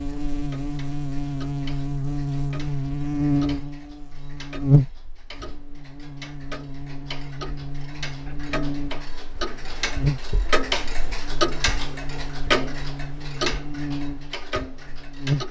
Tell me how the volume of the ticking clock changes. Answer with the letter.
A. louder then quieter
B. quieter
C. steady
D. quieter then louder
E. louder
E.